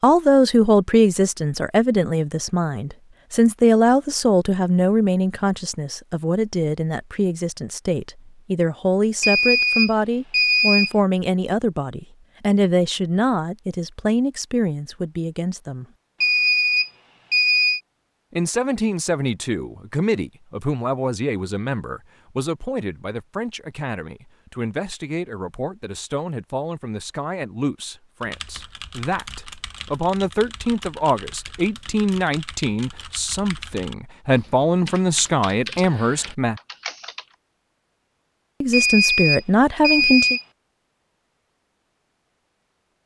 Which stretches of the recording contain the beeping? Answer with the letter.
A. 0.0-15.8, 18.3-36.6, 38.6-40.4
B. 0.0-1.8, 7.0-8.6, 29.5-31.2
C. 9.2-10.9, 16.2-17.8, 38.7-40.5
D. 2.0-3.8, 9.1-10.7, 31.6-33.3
C.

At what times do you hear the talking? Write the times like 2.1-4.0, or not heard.
0.0-15.8, 18.3-36.6, 38.6-40.4.